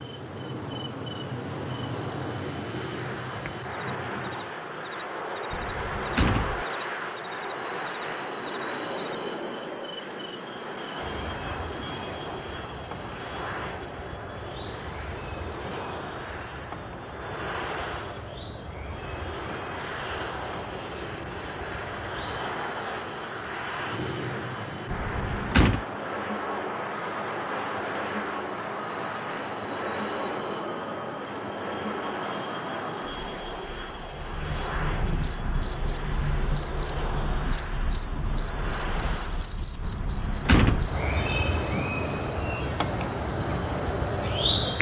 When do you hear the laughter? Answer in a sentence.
You can't hear the laughter here.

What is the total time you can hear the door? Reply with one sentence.
You can hear the door for 3 seconds altogether.